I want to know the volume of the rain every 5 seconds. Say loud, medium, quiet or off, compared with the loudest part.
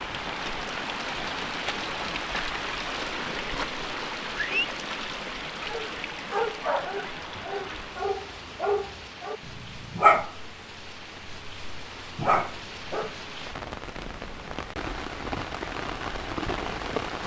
loud, medium, medium, loud.